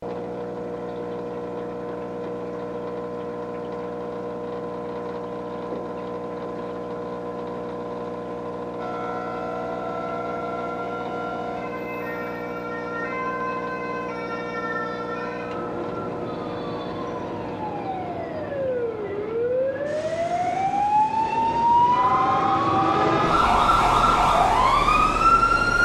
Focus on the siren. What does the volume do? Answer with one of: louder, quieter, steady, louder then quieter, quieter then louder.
louder.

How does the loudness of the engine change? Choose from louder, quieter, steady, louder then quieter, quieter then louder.
quieter.